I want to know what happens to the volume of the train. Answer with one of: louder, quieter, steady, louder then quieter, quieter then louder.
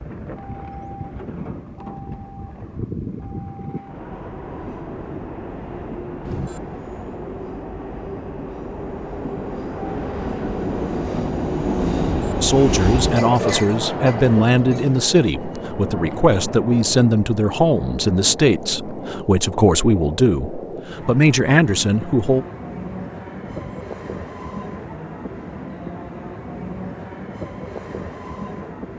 louder then quieter.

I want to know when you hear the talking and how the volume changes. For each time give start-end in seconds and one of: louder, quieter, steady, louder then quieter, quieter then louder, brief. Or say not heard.
12.4-22.4 steady.